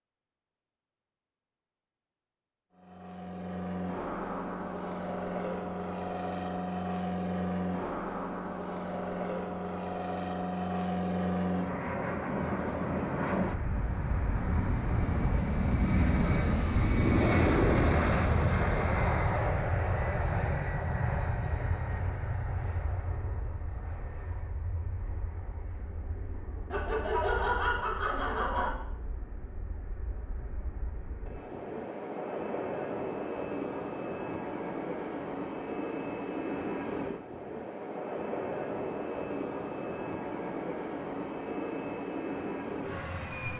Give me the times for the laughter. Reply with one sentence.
The laughter can be heard from 26.7 to 28.7 s.